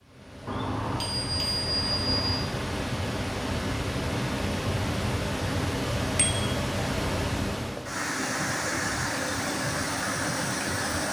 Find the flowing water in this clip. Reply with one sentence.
The flowing water can be heard from 0.0 to 11.0 s.